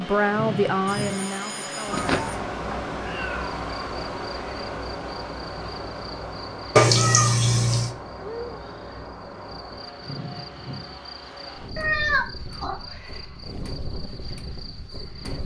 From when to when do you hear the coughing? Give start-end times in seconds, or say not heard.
not heard.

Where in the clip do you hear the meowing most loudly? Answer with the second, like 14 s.
7 s.